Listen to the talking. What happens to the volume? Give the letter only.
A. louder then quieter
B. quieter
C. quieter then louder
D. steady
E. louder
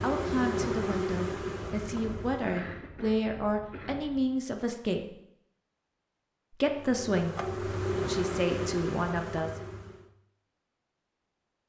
D.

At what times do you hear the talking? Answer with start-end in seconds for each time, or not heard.
0.0-5.2, 6.5-9.6.